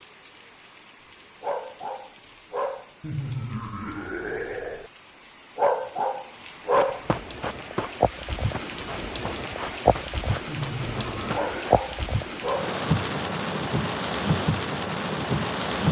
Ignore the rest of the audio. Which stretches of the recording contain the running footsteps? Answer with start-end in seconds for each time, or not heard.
6.7-7.9, 8.5-11.8.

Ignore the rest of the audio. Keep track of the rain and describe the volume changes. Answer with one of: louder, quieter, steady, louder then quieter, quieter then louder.
louder.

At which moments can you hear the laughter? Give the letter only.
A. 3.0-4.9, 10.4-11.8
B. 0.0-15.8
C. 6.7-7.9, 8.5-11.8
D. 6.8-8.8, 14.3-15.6
A.